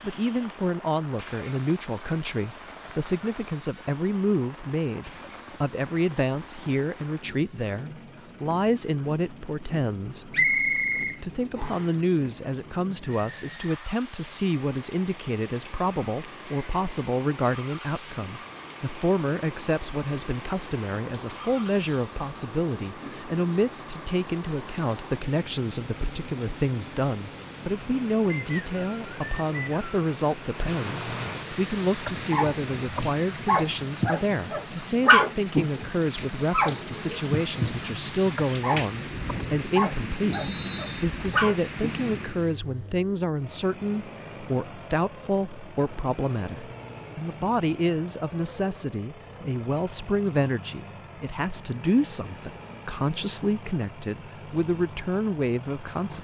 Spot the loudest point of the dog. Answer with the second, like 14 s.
35 s.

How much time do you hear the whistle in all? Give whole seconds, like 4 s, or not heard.
4 s.